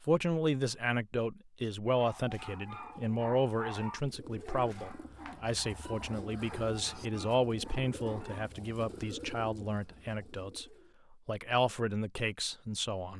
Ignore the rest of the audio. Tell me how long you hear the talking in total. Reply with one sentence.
The talking can be heard for 13 seconds in total.